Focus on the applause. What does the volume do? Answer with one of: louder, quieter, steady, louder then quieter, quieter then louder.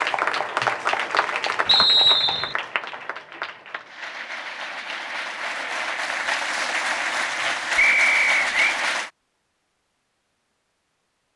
quieter then louder.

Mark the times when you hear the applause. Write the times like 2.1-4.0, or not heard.
0.0-9.1.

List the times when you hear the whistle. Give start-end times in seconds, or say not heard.
1.6-2.5, 7.8-8.8.